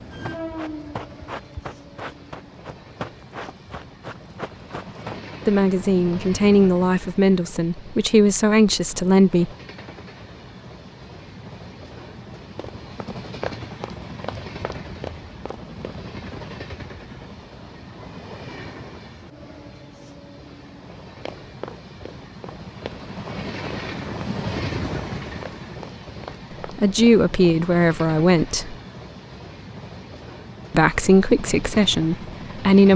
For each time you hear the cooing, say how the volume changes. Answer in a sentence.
You can't hear the cooing here.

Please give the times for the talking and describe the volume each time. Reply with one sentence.
The talking can be heard from 5.5 to 9.5 s, at a steady volume; briefly from 26.8 to 28.8 s; and briefly from 30.7 to 32.9 s.